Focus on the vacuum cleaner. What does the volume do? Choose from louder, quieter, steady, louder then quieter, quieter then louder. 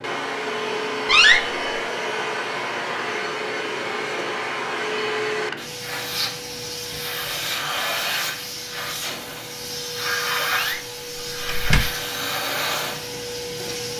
steady.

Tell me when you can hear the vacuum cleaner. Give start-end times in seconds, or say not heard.
0.0-13.9.